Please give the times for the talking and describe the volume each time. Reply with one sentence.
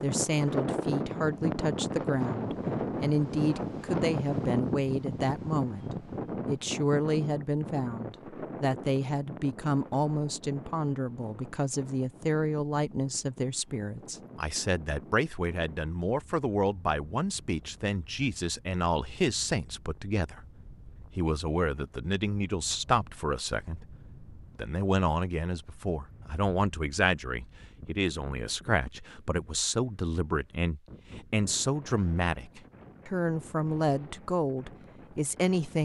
The talking can be heard from 0.0 to 35.8 s, at a steady volume.